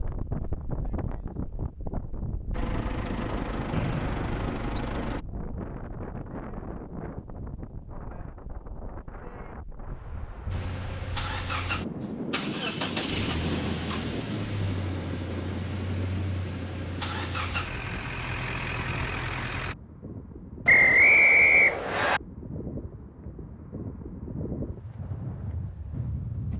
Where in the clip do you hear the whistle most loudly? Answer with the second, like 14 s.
21 s.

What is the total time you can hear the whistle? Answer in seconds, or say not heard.
3 s.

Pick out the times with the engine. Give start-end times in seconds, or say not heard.
2.5-5.2, 10.5-19.8.